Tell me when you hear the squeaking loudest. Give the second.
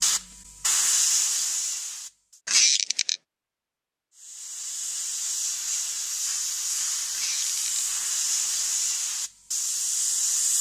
3 s.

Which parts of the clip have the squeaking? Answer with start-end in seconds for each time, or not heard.
2.5-3.2, 7.1-7.8.